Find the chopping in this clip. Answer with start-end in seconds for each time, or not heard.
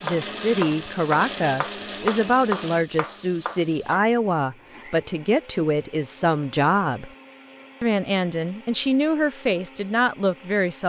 0.0-4.0.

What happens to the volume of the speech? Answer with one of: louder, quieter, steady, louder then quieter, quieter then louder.
steady.